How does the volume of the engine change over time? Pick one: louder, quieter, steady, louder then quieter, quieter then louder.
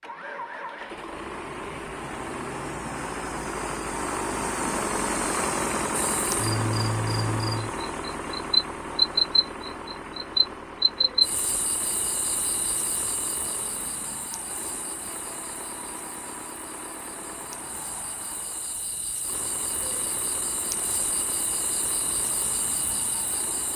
quieter.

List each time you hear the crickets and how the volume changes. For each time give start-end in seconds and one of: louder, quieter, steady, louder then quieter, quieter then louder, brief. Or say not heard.
5.9-23.7 quieter then louder.